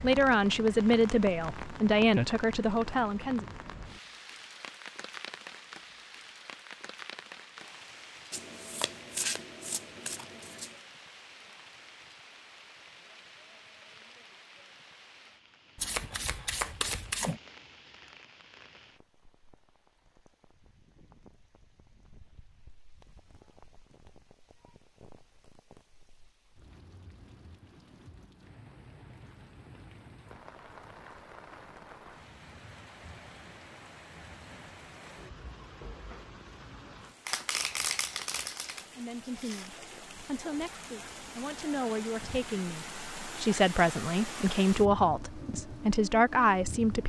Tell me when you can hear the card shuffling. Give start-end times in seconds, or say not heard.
8.3-10.8, 15.8-17.4, 37.2-39.7.